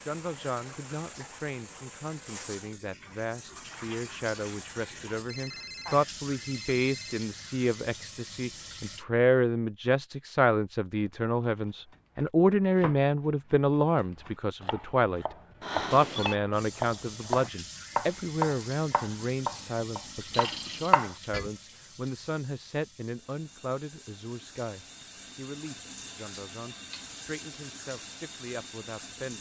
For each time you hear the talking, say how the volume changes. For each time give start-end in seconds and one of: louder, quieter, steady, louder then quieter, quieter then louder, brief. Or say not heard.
0.0-29.3 louder then quieter.